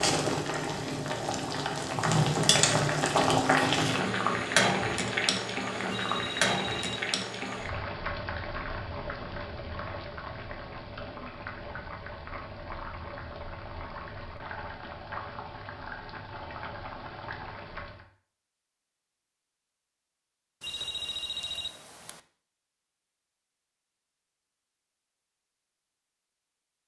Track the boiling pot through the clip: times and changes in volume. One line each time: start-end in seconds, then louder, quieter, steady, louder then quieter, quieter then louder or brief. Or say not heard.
0.0-18.1 quieter.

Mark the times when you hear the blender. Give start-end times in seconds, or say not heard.
not heard.